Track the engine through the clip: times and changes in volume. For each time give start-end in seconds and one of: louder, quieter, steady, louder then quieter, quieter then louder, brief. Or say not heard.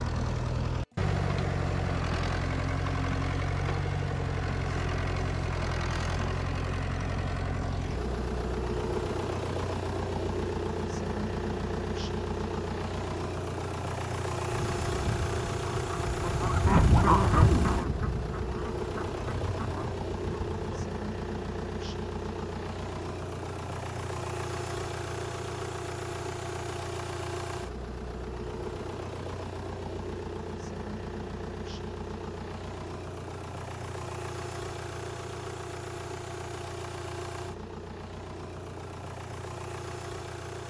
0.0-40.6 quieter.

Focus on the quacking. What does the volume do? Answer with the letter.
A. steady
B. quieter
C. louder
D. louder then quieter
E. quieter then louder
D.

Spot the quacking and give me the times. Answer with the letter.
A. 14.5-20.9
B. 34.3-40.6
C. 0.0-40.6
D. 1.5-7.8
A.